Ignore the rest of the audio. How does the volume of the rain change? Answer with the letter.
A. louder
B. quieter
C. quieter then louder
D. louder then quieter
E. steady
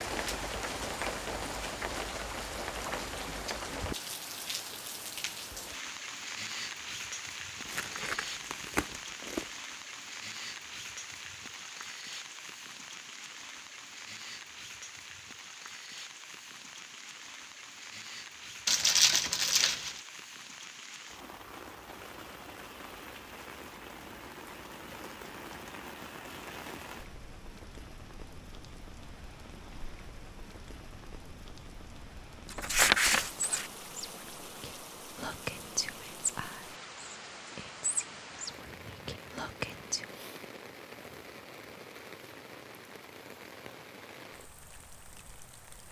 B.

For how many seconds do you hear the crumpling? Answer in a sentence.
You can hear the crumpling for 4 seconds altogether.